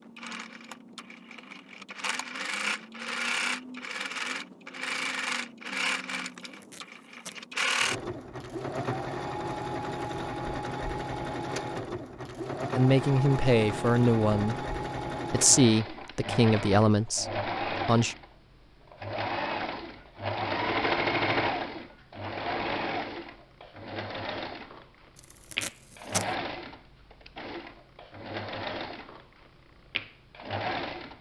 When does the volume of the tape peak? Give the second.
26 s.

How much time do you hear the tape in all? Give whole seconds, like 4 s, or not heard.
2 s.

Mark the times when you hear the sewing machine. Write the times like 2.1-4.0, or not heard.
0.0-31.1.